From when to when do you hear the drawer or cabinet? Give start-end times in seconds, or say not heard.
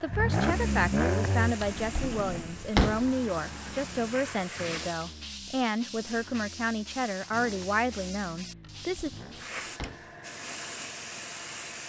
1.6-3.1, 8.6-10.2.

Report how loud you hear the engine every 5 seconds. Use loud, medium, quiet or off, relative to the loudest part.
loud, quiet, off.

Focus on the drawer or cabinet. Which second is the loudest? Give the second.
3 s.